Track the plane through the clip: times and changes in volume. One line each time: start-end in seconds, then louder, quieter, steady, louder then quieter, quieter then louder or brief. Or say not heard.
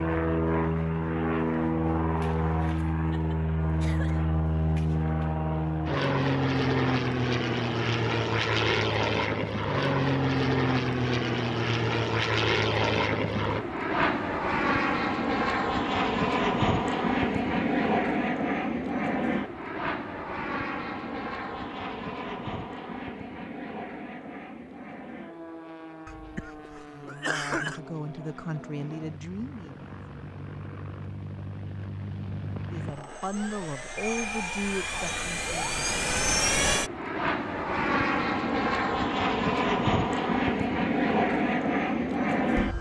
0.0-42.7 quieter then louder.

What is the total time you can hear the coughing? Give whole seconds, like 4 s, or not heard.
3 s.